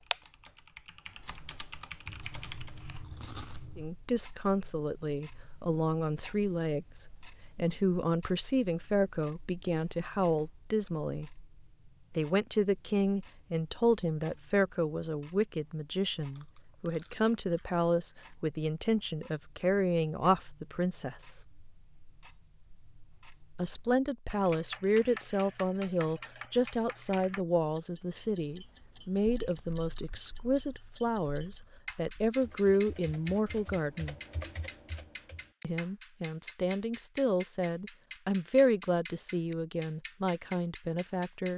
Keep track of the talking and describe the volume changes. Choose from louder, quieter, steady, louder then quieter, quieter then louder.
steady.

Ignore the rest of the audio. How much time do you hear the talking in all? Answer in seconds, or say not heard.
33 s.